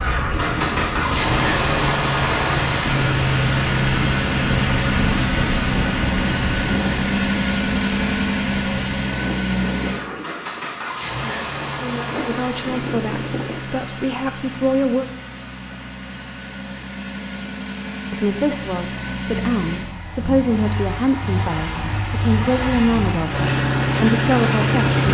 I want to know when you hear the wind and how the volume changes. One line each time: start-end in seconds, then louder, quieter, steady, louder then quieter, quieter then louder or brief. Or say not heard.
0.0-13.7 quieter.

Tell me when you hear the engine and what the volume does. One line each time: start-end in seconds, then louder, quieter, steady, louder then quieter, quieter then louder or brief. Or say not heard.
0.0-25.1 quieter then louder.